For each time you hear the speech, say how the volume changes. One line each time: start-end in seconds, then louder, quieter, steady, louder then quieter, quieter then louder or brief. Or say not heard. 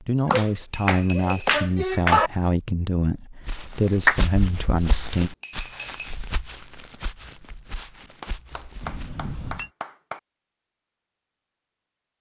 0.0-5.3 steady.